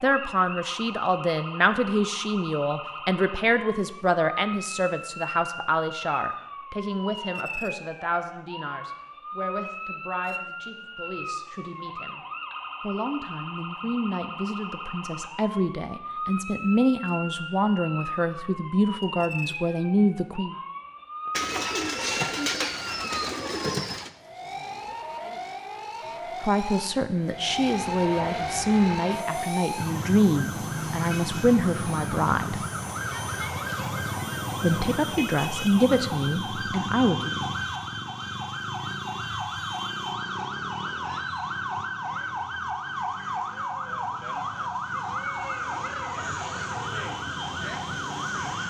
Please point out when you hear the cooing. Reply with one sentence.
The cooing can be heard from 21.3 to 24.1 s.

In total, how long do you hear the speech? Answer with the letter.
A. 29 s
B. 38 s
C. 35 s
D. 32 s
A.